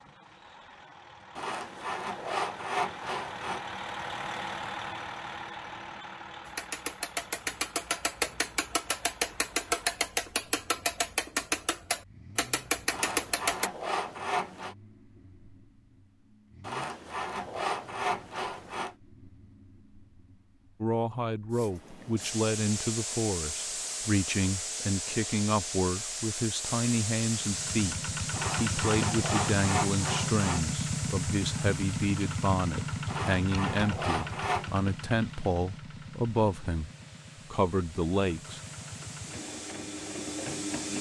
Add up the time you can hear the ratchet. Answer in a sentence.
The ratchet can be heard for 7 seconds in total.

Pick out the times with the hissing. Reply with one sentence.
You can hear the hissing from 21.5 to 40.9 s.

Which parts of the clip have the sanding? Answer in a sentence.
You can hear the sanding from 1.4 to 3.6 s, from 12.9 to 14.8 s, from 16.6 to 18.9 s, from 28.3 to 30.6 s and from 33.0 to 34.7 s.